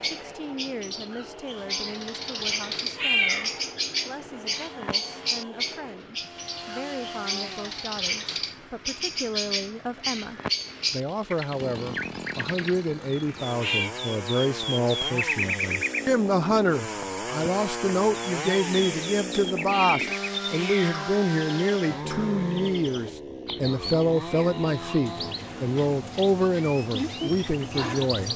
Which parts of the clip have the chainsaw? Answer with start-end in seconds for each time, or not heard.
0.0-25.4.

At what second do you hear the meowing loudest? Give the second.
3 s.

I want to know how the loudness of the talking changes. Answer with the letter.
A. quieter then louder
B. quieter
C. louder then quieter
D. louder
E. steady
D.